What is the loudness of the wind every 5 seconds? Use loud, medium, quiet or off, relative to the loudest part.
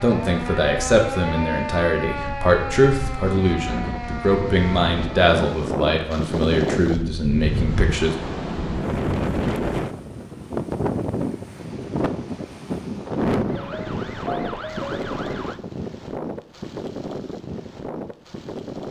medium, loud, loud, medium.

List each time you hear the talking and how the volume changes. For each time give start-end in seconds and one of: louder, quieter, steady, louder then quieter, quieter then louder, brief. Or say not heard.
0.0-8.2 steady.